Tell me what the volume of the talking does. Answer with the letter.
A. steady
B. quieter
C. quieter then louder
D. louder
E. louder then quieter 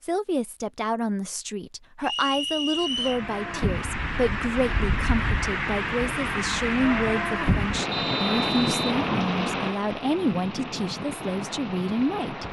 A.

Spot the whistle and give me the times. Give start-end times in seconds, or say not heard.
2.0-3.2, 7.9-8.9.